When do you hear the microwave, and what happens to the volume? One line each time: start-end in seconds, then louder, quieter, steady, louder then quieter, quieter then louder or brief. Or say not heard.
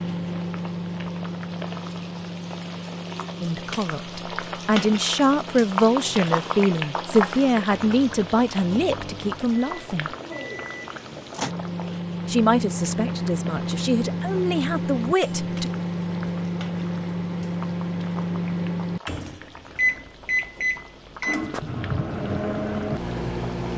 0.0-23.7 quieter then louder.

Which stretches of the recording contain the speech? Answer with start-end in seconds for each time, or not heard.
3.4-10.1, 12.2-15.7.